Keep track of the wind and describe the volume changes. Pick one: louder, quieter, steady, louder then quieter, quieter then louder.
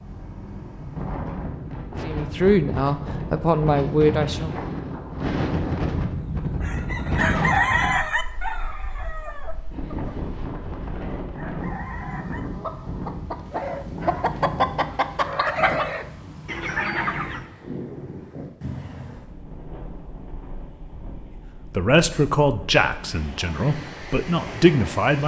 quieter.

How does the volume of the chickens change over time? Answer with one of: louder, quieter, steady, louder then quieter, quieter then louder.
quieter then louder.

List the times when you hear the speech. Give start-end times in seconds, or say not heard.
2.0-4.5, 21.7-25.2.